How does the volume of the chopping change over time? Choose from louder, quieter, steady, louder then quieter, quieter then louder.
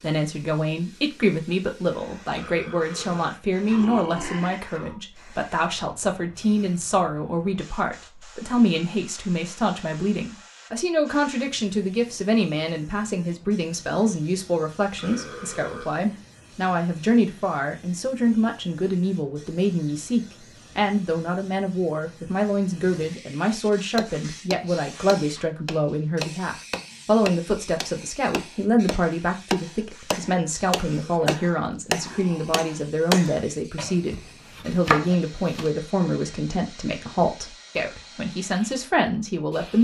louder.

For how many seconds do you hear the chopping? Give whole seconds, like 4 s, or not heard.
12 s.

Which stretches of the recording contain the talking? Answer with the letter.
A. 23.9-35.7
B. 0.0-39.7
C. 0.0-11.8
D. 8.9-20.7
B.